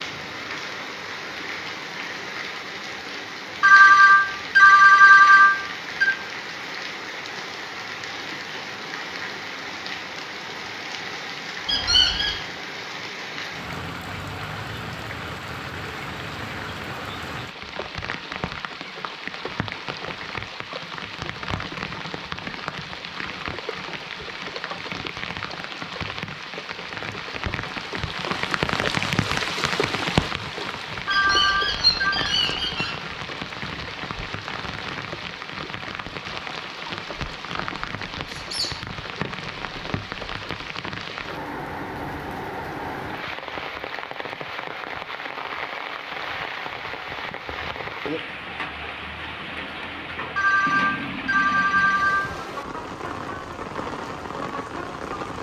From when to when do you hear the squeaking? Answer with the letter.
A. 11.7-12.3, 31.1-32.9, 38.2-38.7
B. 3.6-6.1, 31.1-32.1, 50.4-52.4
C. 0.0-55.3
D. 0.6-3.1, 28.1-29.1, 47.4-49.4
A.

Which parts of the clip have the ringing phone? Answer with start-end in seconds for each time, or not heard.
3.6-6.1, 31.1-32.1, 50.4-52.4.